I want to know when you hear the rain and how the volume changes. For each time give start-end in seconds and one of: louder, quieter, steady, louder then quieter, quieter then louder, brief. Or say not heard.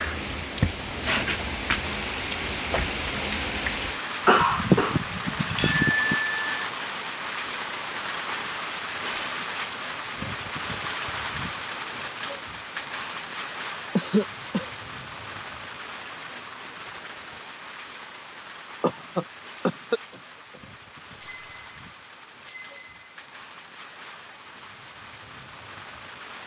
0.0-26.4 quieter.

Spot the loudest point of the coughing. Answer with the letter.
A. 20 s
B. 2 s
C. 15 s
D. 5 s
D.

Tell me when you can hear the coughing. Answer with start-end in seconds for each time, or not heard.
4.2-6.2, 13.9-14.7, 18.8-20.6.